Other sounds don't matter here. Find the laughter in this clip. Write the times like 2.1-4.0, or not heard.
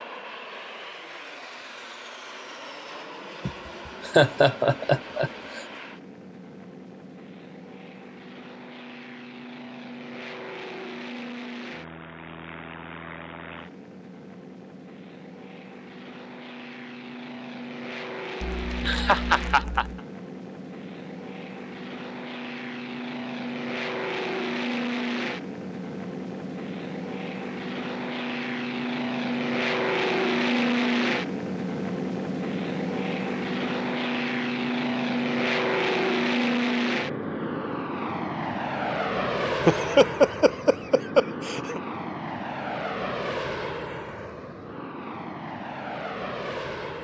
3.5-5.6, 18.4-19.9, 39.6-41.8.